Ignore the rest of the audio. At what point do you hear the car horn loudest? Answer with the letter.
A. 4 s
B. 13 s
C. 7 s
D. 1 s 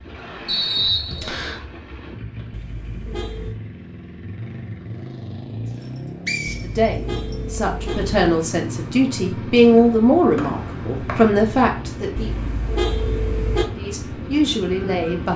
B.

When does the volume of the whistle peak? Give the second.
1 s.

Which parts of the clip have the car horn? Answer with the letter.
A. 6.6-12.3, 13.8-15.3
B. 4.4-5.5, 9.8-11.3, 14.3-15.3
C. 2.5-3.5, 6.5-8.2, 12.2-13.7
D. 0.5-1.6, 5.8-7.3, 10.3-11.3
C.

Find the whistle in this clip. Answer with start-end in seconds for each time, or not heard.
0.5-1.6, 5.8-7.3, 10.3-11.3.